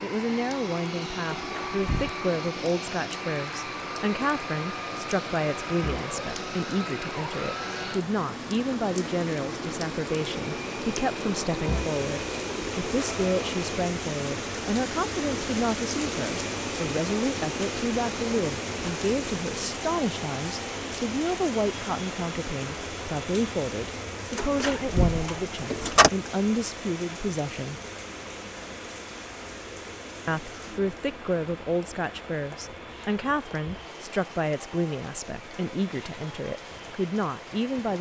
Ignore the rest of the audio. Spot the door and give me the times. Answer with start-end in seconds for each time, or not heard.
1.3-2.1, 24.4-26.1.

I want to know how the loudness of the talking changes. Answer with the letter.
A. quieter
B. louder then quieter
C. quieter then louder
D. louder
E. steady
E.